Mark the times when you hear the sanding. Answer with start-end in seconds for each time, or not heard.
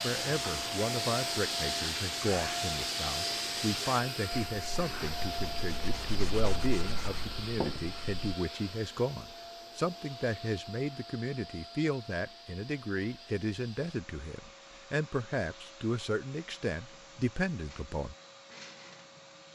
0.0-8.3.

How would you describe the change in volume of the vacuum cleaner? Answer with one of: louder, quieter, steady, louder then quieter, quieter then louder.
quieter.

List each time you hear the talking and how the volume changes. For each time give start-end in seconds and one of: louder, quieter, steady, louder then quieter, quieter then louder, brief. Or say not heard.
0.0-18.1 steady.